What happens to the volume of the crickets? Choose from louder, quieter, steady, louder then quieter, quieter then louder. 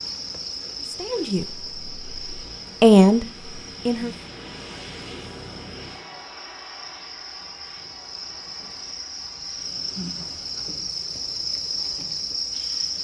quieter then louder.